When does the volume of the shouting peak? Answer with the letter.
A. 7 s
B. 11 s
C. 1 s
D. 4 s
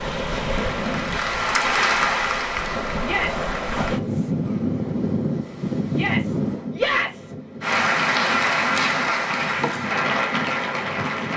A.